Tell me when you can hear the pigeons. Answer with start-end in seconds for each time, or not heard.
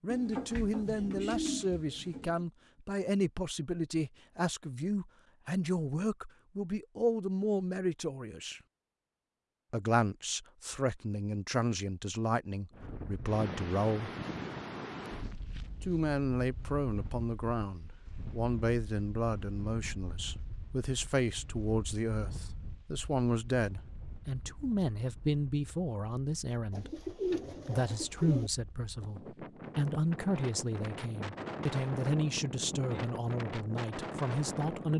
0.1-2.5, 26.7-28.5.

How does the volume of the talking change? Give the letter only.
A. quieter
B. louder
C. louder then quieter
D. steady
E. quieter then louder
D.